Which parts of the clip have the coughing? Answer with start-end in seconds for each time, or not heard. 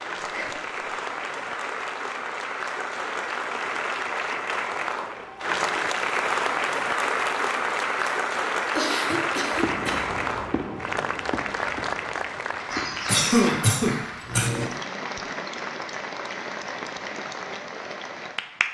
0.2-0.7, 8.8-10.1, 12.7-14.7.